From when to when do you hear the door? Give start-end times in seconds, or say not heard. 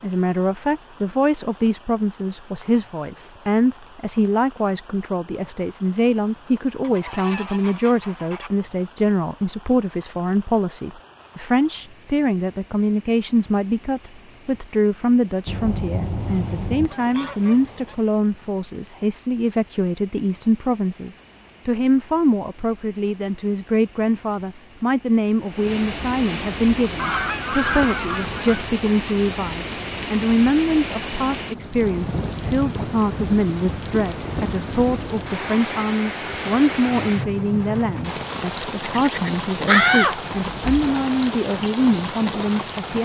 39.6-40.9.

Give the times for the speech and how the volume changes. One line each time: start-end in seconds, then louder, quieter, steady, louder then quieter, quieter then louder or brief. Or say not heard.
0.0-43.0 steady.